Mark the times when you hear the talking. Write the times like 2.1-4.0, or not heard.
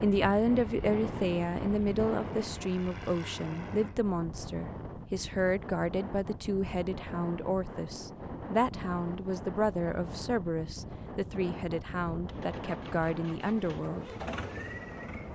0.0-14.1.